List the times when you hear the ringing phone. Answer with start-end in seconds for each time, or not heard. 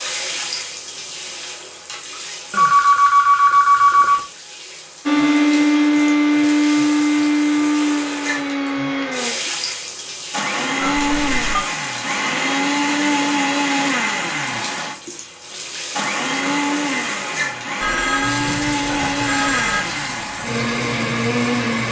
2.5-4.2, 10.8-11.7, 17.8-19.8.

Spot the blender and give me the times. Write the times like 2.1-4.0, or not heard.
5.0-21.8.